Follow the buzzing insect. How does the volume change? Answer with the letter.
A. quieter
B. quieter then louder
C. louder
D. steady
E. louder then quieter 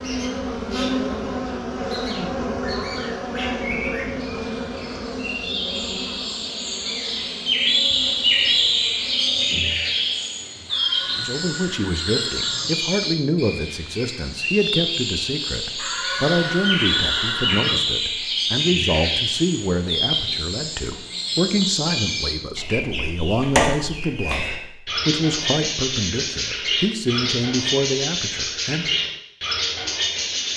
A.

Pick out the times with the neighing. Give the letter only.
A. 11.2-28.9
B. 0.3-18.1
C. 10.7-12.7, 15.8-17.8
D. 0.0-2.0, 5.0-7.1
C.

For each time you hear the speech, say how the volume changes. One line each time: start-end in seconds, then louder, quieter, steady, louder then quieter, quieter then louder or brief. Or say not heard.
11.2-28.9 steady.